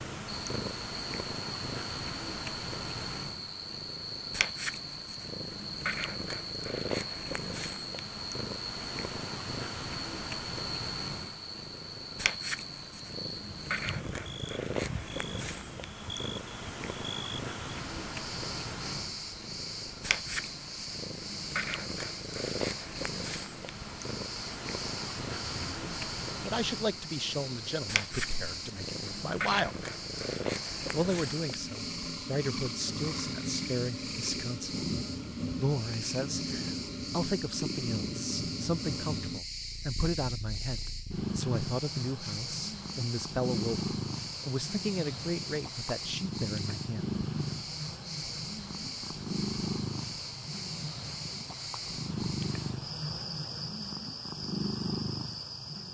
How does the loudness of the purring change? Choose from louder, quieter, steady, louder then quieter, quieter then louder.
steady.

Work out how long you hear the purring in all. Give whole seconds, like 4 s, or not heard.
56 s.